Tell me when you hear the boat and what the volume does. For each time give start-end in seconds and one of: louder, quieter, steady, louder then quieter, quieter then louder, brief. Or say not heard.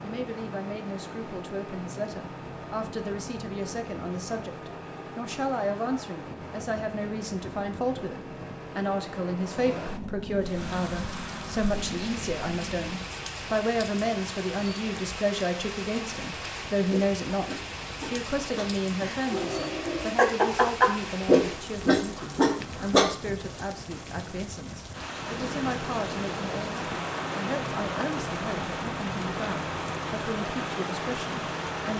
0.0-13.0 steady
25.1-31.9 steady.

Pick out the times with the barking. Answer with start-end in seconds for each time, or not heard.
16.9-23.1.